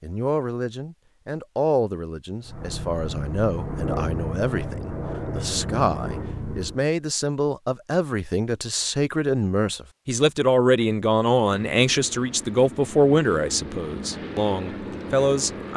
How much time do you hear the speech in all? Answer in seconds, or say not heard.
16 s.